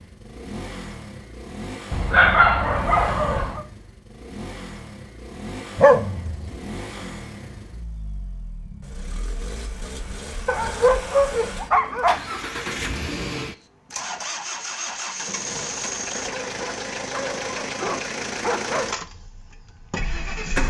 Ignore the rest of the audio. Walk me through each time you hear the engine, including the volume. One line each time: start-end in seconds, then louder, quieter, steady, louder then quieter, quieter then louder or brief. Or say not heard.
0.0-20.6 louder.